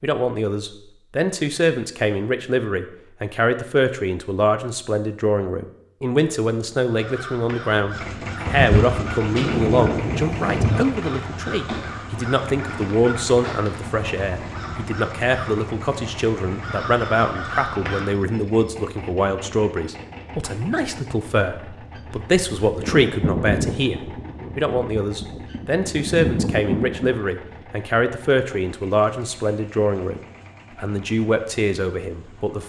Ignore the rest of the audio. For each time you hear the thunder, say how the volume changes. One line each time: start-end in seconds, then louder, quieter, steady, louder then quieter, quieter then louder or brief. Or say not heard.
8.4-10.8 brief
22.8-27.2 quieter then louder.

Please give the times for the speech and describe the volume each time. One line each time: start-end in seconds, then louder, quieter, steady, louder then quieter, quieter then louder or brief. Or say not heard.
0.0-32.6 steady.